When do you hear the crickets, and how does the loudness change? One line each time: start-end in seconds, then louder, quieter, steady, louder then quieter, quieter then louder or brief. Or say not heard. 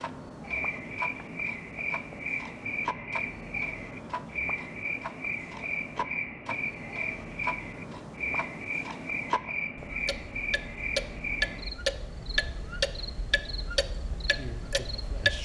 0.0-15.4 quieter.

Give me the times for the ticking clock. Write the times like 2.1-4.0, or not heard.
0.0-15.4.